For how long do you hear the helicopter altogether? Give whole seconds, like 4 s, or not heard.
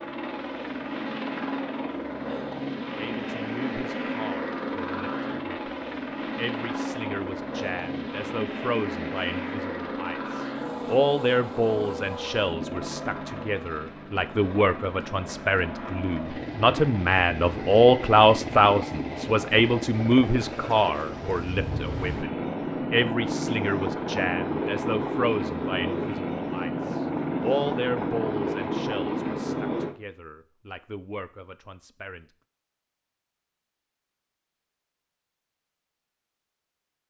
30 s.